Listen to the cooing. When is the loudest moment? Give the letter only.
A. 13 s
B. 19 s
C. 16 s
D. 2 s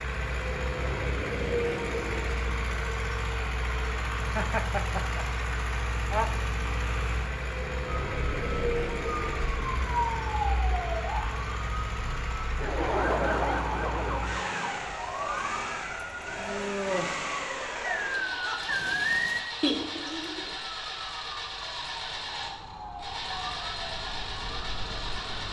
B.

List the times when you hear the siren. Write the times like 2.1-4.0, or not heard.
8.1-25.4.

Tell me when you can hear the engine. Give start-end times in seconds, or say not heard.
0.0-25.4.